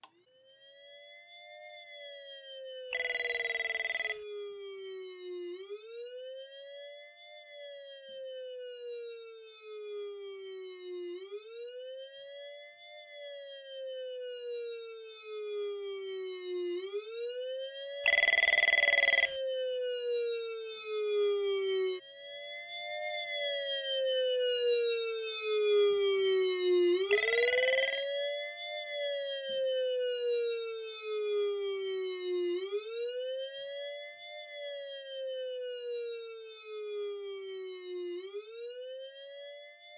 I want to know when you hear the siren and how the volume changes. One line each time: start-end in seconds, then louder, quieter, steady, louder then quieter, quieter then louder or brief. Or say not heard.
0.0-39.9 louder then quieter.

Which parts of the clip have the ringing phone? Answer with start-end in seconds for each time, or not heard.
2.9-4.2, 18.1-19.4, 27.1-28.1.